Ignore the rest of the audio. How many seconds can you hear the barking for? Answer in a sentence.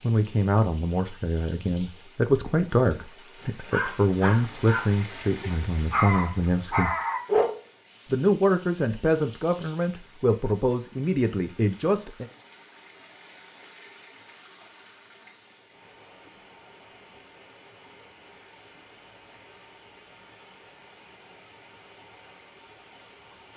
You can hear the barking for 4 seconds altogether.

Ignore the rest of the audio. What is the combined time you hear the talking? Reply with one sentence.
You can hear the talking for 11 seconds altogether.